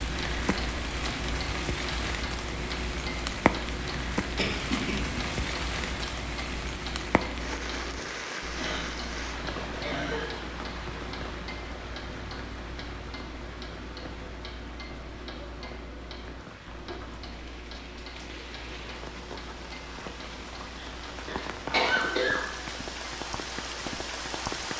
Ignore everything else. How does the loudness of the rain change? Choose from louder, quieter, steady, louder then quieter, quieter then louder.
quieter then louder.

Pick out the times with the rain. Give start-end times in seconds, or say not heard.
0.0-24.7.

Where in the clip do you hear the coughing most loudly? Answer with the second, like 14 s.
22 s.